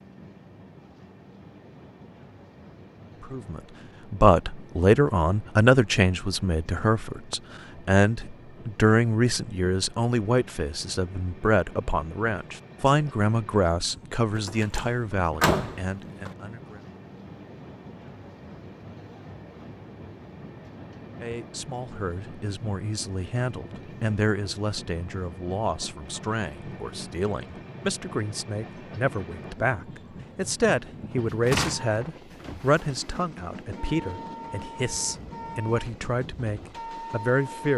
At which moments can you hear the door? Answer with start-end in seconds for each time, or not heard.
14.3-16.3, 31.3-33.1.